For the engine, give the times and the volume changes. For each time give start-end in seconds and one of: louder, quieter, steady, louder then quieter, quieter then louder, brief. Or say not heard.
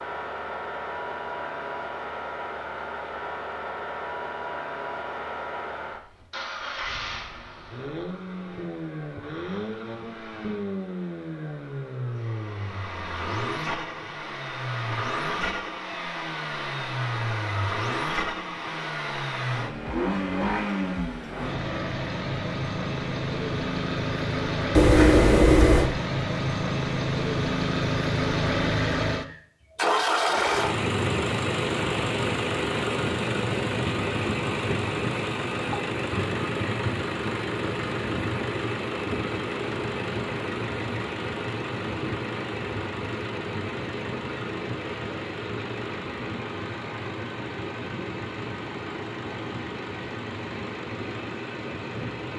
0.0-52.3 louder then quieter.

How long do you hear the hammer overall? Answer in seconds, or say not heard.
not heard.